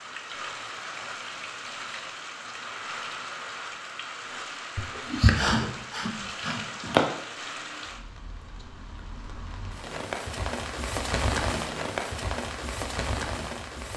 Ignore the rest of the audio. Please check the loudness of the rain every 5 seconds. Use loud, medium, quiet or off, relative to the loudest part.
medium, medium, loud.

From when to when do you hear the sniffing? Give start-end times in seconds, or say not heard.
4.8-7.0.